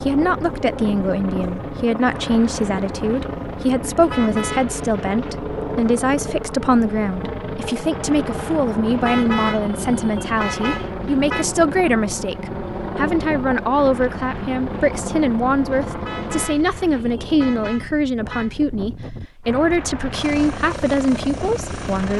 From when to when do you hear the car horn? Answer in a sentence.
You can hear the car horn from 4.1 to 4.8 s, from 9.0 to 11.4 s and from 16.1 to 18.5 s.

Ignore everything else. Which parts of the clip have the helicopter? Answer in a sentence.
You can hear the helicopter from 0.0 to 16.5 s and from 20.1 to 22.1 s.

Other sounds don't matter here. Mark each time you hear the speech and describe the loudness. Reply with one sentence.
The speech can be heard from 0.1 to 22.1 s, at a steady volume.